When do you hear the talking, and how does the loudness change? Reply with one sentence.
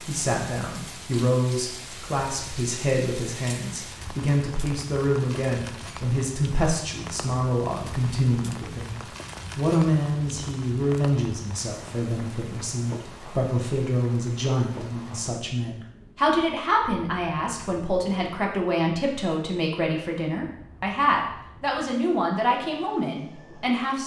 The talking can be heard from 0.1 to 24.0 s, at a steady volume.